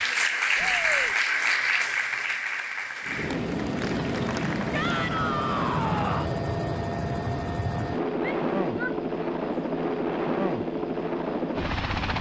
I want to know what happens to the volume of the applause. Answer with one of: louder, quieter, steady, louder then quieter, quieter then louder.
quieter.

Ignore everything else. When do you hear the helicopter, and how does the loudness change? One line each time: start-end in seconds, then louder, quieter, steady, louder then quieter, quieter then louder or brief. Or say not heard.
3.0-12.1 steady.